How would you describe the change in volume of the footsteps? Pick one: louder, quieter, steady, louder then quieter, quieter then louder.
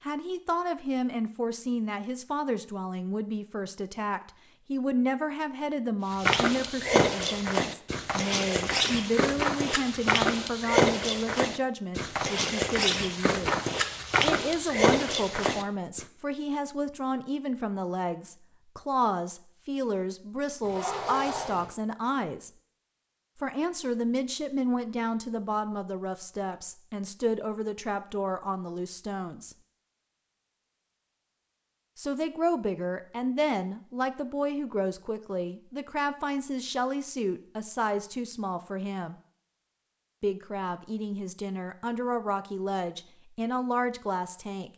steady.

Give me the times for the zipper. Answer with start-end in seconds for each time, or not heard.
20.6-21.8.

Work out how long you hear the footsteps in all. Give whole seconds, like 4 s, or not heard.
10 s.